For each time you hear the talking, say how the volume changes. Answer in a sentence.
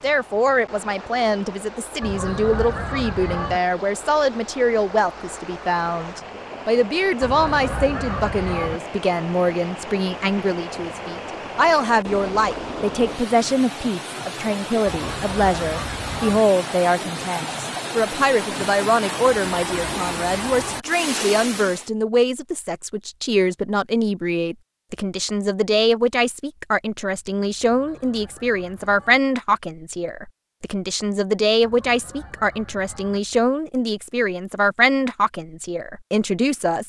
The talking can be heard from 0.0 to 36.8 s, at a steady volume.